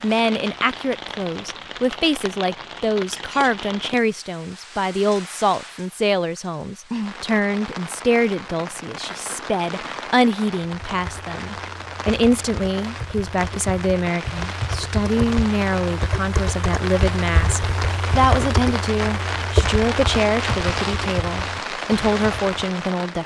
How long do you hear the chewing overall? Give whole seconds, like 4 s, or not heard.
not heard.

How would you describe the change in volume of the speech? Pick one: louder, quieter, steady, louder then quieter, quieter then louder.
steady.